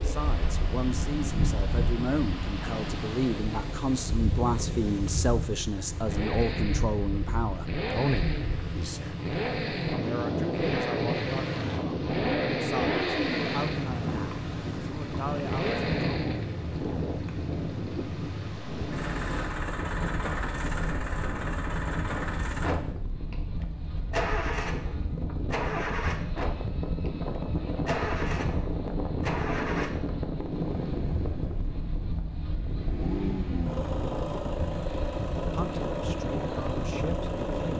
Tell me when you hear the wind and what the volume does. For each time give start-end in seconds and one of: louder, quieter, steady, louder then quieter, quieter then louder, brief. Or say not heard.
0.0-37.7 steady.